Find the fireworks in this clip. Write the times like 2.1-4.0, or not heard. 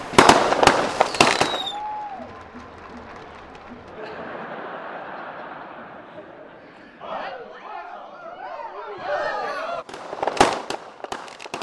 0.0-1.8, 9.8-11.5.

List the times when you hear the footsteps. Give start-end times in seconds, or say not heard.
not heard.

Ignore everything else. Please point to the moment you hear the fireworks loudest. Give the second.
1 s.